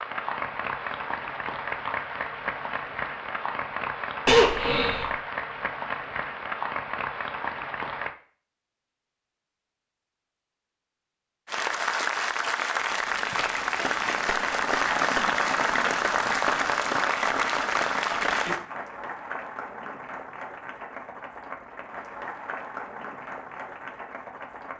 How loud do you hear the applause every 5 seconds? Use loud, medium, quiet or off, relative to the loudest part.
medium, medium, loud, loud, quiet.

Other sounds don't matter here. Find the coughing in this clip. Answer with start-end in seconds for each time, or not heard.
4.2-5.1.